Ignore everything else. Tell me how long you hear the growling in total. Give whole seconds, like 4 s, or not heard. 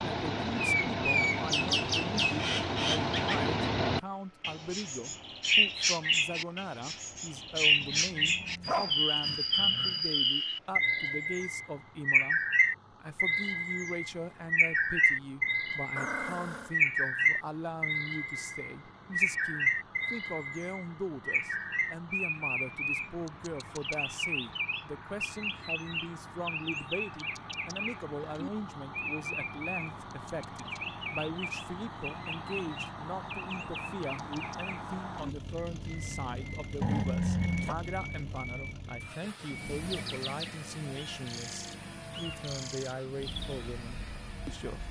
4 s.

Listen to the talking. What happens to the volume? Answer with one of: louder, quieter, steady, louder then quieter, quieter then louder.
steady.